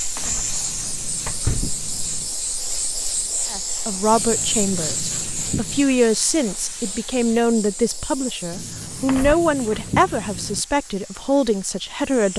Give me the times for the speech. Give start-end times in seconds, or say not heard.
3.5-12.3.